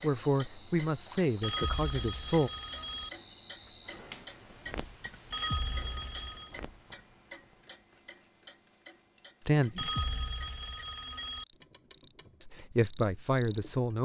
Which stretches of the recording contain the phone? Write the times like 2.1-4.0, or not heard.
1.4-3.1, 5.3-6.5, 9.8-11.4.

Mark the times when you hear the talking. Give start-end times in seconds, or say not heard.
0.0-2.5, 9.4-9.9, 12.4-14.0.